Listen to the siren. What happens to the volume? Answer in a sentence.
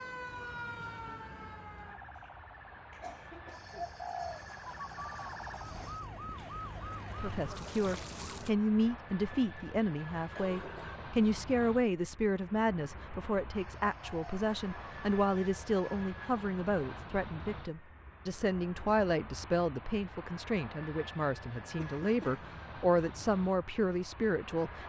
The volume of the siren goes down, then up.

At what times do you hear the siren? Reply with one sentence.
You can hear the siren from 0.0 to 8.5 s.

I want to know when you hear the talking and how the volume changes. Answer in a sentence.
The talking can be heard from 7.2 to 24.8 s, at a steady volume.